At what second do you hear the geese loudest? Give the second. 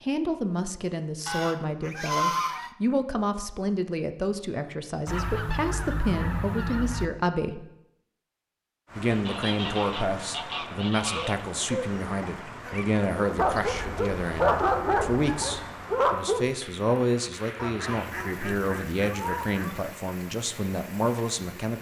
2 s.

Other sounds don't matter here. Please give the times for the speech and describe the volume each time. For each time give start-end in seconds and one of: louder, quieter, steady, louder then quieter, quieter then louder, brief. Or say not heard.
0.0-7.7 steady
8.9-21.7 steady.